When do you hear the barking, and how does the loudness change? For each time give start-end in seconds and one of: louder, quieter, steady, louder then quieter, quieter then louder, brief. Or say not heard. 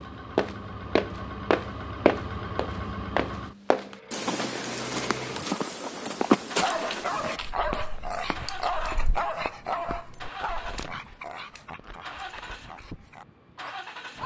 6.6-14.2 quieter.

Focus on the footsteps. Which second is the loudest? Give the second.
6 s.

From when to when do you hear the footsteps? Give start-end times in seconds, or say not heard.
0.3-10.8.